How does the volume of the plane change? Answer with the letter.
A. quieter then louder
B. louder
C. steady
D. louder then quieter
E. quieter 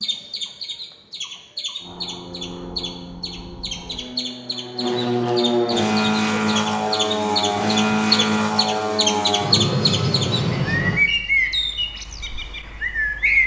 B.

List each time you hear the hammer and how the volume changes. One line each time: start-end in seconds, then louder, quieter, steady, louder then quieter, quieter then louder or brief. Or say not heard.
not heard.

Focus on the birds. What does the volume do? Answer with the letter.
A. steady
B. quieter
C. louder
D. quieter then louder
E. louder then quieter
C.